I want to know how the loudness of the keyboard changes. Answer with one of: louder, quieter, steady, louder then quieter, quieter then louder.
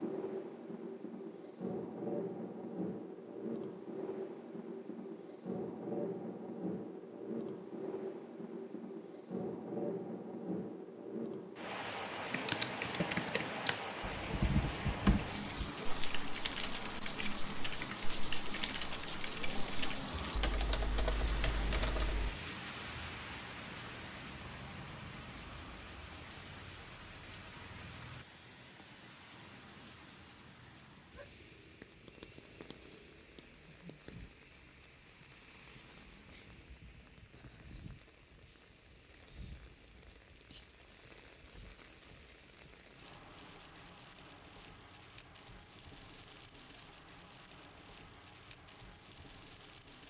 quieter then louder.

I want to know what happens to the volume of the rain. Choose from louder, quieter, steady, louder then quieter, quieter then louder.
quieter.